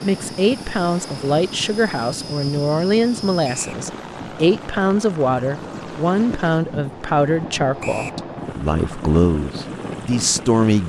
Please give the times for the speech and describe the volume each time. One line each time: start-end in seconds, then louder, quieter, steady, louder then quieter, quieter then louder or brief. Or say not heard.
0.0-10.8 steady.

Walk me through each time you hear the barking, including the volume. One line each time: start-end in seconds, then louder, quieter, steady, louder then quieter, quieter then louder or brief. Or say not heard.
not heard.